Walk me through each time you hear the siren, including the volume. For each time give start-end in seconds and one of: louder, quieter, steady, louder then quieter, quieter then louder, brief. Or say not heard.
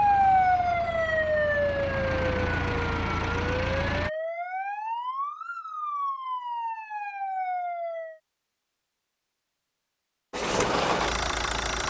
0.0-8.2 quieter.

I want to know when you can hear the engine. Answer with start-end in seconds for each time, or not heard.
0.0-4.1, 10.3-11.8.